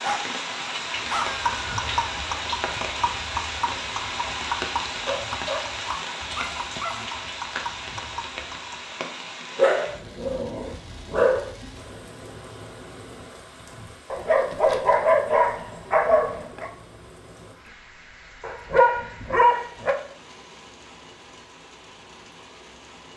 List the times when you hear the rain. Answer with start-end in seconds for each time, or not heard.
0.0-23.1.